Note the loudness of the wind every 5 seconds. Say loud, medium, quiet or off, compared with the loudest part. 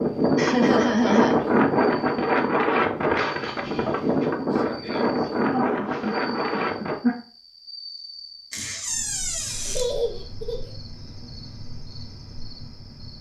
loud, loud, off.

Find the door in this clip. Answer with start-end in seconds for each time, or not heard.
3.1-4.3, 8.5-9.8.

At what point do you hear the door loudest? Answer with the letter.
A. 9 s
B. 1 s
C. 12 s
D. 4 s
A.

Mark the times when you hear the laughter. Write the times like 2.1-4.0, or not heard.
0.3-1.4, 4.8-7.2, 9.7-10.7.